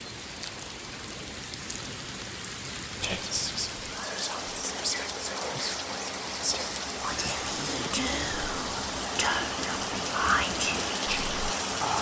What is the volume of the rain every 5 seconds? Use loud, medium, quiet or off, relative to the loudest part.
medium, loud, loud.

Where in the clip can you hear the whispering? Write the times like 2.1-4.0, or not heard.
3.0-11.9.